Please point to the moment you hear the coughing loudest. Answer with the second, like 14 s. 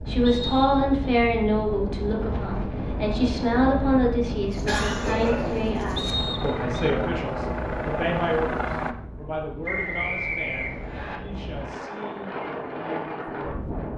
5 s.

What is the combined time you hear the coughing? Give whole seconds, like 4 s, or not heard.
2 s.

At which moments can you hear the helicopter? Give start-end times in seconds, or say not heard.
4.8-8.9.